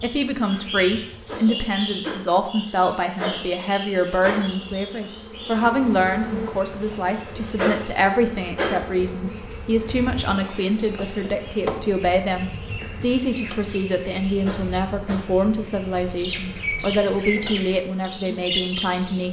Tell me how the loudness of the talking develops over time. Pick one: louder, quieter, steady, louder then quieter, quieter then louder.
steady.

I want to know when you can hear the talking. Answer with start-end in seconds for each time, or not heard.
0.0-19.2.